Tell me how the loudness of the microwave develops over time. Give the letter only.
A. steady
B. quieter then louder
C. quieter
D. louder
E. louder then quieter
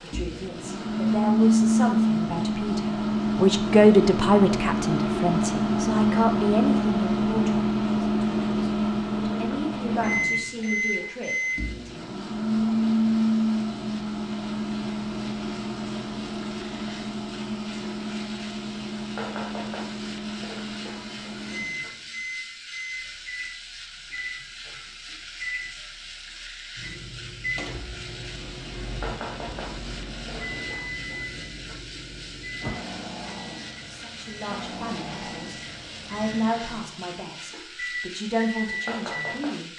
C.